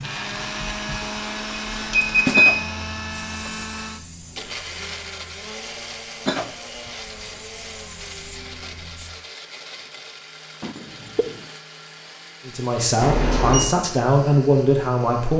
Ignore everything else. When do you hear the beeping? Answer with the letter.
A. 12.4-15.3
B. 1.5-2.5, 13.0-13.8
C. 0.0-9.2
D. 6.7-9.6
B.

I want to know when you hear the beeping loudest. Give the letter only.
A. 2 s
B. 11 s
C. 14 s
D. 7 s
A.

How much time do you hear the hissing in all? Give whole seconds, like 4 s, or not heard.
9 s.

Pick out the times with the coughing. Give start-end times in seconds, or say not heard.
2.4-3.0, 6.2-7.3, 10.6-11.4.